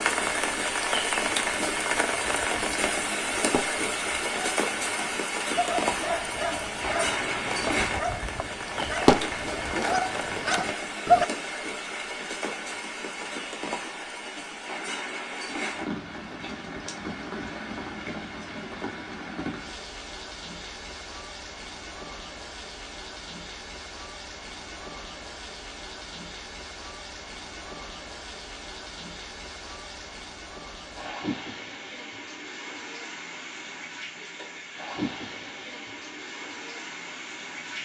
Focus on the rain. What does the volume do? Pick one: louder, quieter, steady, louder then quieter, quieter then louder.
quieter.